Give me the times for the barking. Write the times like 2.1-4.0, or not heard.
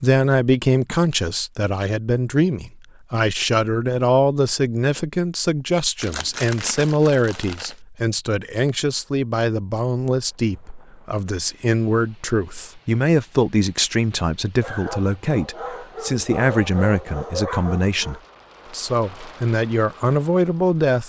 14.6-18.2.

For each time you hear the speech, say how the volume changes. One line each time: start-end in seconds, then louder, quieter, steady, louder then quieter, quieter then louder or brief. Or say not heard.
0.0-21.0 steady.